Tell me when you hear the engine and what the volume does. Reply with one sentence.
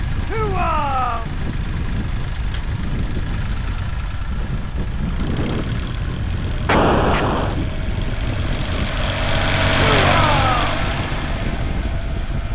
The engine can be heard from 0.0 to 12.5 s, getting louder.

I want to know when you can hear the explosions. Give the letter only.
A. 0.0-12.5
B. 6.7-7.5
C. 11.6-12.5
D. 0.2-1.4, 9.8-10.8
B.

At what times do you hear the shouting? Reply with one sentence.
You can hear the shouting from 0.2 to 1.4 s and from 9.8 to 10.8 s.